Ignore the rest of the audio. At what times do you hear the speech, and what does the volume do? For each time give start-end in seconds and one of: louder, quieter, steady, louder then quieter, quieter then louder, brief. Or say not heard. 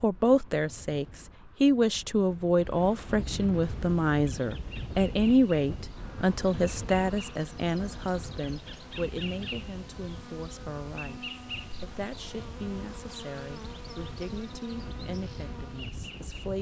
0.0-16.5 quieter.